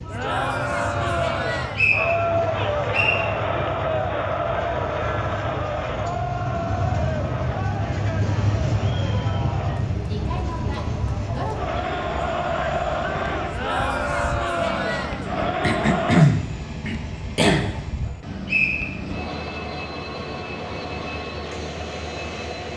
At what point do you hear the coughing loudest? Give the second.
16 s.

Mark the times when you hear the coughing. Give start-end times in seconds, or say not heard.
15.6-17.8.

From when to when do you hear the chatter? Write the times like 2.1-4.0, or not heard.
0.0-16.2.